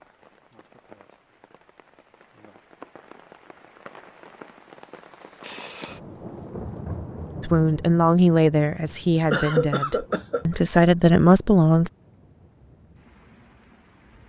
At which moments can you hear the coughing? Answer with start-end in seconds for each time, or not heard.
9.3-10.6.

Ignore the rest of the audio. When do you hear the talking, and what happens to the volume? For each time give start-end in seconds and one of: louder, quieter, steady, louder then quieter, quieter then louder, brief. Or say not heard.
7.4-11.9 quieter then louder.